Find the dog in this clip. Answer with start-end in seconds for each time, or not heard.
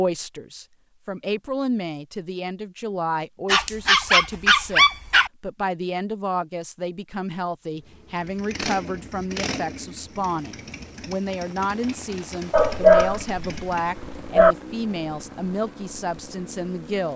3.5-5.3, 12.5-14.6.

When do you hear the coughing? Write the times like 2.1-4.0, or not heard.
not heard.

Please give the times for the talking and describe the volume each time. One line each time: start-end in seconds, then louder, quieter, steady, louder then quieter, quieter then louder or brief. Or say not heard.
0.0-17.1 steady.